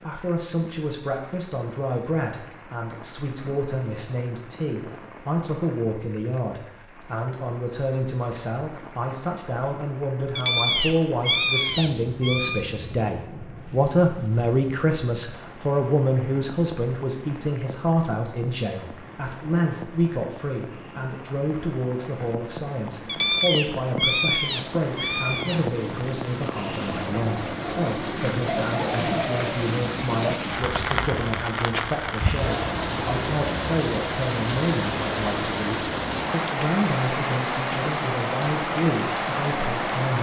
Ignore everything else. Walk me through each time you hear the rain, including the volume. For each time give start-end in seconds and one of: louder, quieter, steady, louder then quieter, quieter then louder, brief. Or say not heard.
0.0-40.1 louder.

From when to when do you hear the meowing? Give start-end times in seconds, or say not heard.
10.3-12.6, 23.1-25.6.